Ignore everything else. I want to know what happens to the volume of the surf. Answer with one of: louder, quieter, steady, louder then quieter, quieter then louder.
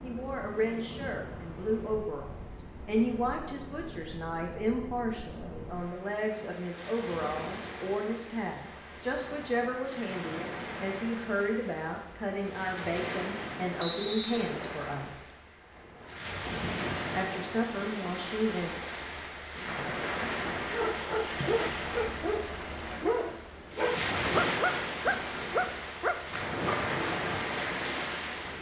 louder.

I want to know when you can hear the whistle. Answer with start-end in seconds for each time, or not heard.
13.8-14.4.